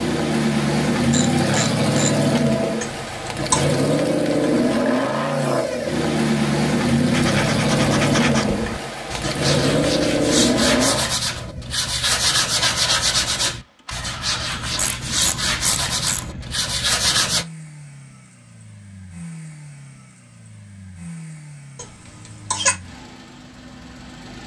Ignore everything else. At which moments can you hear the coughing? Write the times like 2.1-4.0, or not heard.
2.8-3.6, 21.8-22.8.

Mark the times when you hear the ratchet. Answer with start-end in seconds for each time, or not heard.
1.1-2.8, 14.5-16.3.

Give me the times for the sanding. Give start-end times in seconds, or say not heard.
7.1-17.4.